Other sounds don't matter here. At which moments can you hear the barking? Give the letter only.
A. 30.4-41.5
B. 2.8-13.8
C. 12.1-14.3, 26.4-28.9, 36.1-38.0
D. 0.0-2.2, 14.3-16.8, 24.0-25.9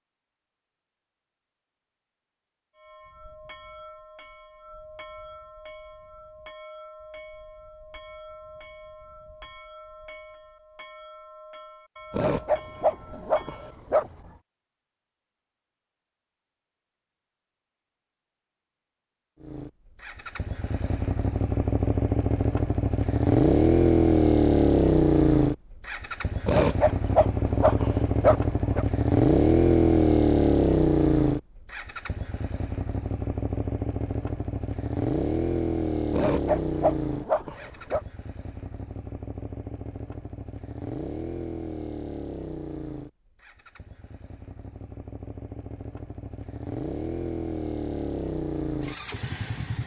C.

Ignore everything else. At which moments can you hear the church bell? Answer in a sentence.
The church bell can be heard from 2.8 to 13.8 s.